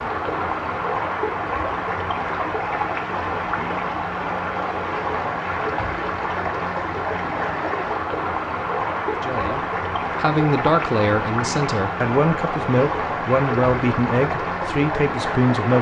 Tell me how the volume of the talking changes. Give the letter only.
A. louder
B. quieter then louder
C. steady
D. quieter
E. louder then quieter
C.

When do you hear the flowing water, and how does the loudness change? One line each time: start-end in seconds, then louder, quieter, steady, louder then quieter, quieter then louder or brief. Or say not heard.
0.0-15.7 steady.